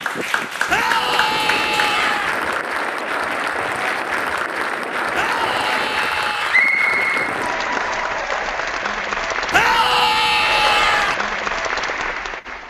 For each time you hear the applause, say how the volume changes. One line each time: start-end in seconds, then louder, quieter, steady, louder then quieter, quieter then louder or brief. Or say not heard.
0.0-12.6 steady.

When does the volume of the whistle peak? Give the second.
7 s.